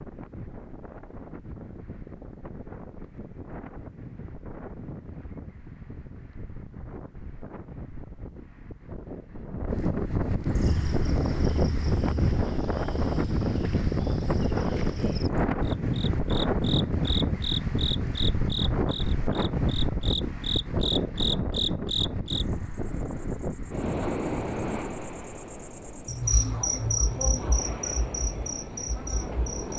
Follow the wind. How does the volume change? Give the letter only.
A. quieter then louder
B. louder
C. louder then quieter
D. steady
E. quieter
C.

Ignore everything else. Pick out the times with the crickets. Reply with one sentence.
The crickets can be heard from 10.5 to 29.7 s.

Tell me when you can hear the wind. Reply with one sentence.
You can hear the wind from 0.0 to 29.7 s.